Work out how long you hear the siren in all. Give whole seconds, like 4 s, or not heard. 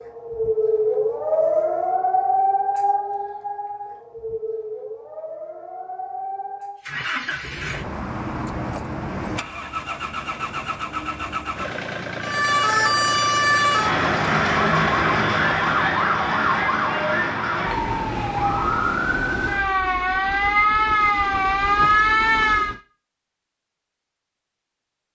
17 s.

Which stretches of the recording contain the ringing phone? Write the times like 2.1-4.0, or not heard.
not heard.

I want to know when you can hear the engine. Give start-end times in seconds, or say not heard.
6.8-22.8.